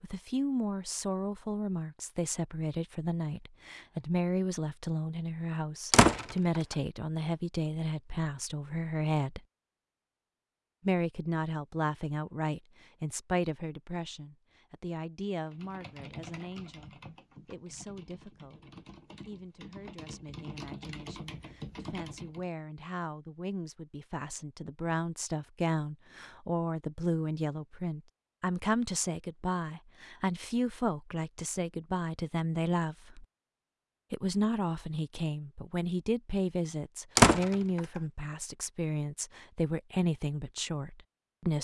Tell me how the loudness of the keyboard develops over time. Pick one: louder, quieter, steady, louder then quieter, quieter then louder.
quieter then louder.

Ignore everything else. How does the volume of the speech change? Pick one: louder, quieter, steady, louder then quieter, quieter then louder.
quieter then louder.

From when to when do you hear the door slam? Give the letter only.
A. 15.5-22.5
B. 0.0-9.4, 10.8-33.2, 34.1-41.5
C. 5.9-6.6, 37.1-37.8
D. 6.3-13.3
C.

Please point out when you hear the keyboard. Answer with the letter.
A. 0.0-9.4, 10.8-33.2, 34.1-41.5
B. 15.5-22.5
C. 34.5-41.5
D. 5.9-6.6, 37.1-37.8
B.